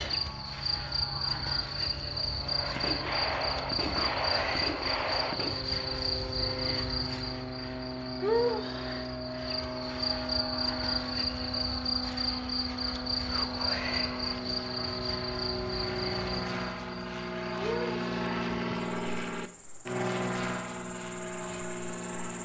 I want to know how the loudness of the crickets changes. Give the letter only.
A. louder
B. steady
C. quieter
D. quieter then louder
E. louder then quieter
C.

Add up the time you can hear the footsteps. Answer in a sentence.
You can't hear the footsteps here.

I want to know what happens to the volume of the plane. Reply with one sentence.
The loudness of the plane goes up.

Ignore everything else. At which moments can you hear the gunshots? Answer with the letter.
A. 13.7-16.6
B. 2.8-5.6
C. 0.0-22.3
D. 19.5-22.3
B.